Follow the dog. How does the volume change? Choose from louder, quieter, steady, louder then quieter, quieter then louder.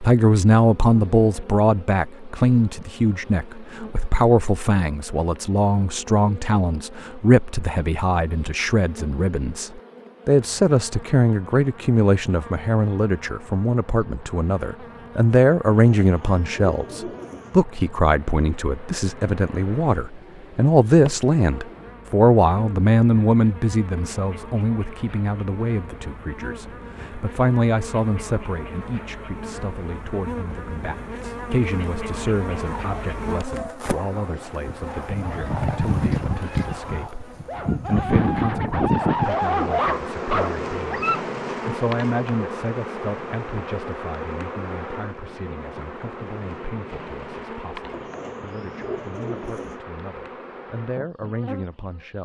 louder.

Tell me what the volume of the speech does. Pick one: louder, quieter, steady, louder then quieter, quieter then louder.
quieter.